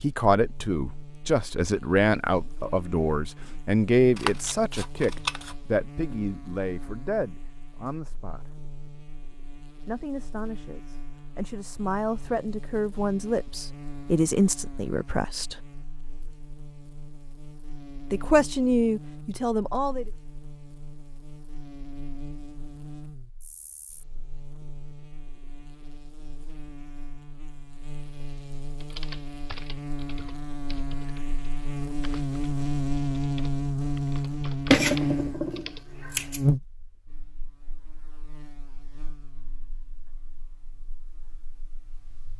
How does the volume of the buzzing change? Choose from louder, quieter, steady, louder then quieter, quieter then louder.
louder.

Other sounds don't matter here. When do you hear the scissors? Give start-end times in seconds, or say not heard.
4.2-5.5, 34.7-36.4.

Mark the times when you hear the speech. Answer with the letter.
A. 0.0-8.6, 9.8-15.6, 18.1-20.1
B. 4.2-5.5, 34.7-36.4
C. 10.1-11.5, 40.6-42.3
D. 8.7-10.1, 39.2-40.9
A.